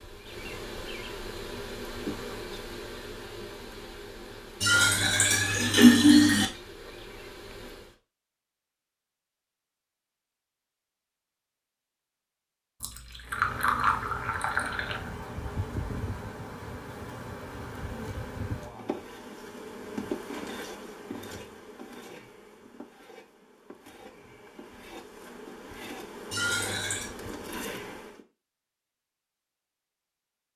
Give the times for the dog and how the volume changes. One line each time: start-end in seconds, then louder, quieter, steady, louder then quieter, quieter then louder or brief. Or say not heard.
not heard.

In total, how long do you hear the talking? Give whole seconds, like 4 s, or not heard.
not heard.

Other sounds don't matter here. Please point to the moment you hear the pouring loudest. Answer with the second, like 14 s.
6 s.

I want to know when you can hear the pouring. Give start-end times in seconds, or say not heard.
4.6-6.5, 12.8-15.0, 26.3-27.1.